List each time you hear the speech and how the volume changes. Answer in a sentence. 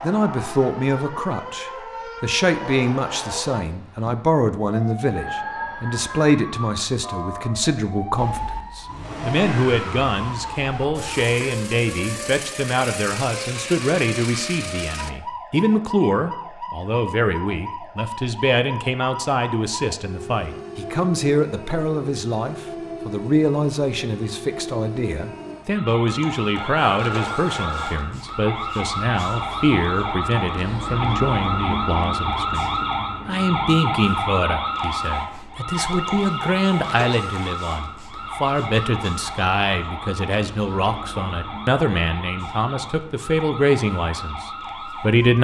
The speech can be heard from 0.0 to 45.3 s, at a steady volume.